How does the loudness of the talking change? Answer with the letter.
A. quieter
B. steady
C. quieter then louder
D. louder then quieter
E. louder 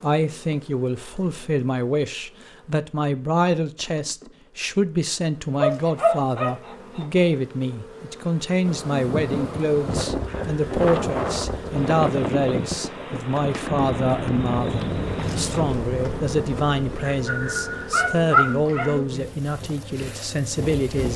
B.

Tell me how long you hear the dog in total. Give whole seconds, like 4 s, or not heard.
3 s.